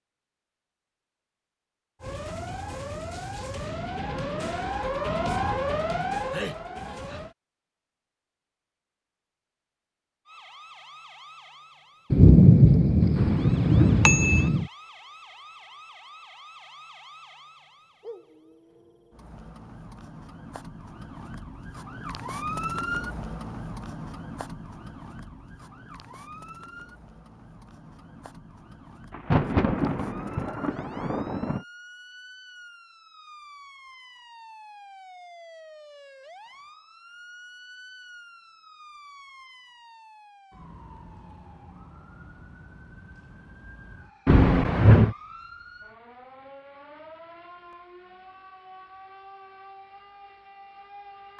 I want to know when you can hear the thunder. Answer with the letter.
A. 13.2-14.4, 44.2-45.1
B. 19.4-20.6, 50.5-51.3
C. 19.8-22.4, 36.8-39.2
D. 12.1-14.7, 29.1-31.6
D.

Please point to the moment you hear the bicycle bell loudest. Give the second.
45 s.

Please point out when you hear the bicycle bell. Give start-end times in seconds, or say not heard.
13.2-14.4, 44.2-45.1.